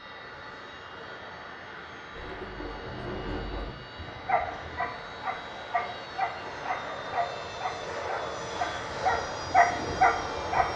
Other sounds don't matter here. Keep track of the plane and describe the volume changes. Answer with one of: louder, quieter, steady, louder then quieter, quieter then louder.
louder.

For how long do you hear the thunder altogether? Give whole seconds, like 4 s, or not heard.
2 s.